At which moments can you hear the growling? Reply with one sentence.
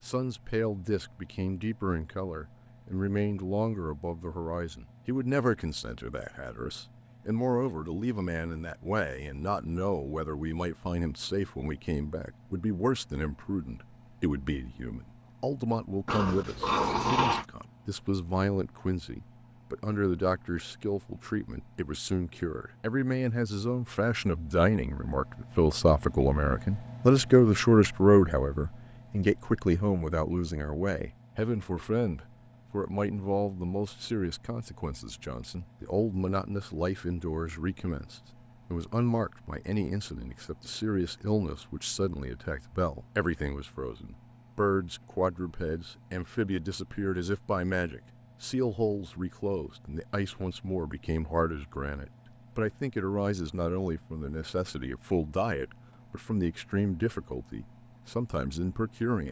The growling can be heard from 16.1 to 17.4 s.